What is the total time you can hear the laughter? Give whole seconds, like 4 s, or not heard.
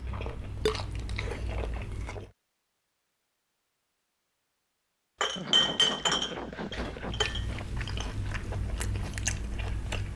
2 s.